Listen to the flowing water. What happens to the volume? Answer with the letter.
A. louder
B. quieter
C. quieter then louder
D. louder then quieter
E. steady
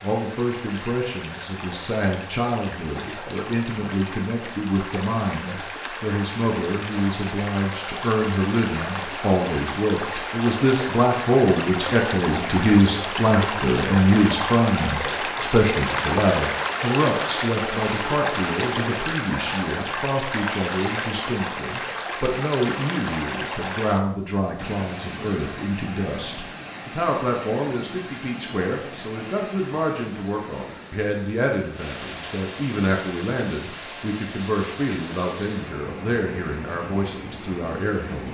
D.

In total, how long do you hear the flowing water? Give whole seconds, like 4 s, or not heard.
38 s.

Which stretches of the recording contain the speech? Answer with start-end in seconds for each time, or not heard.
0.0-38.3.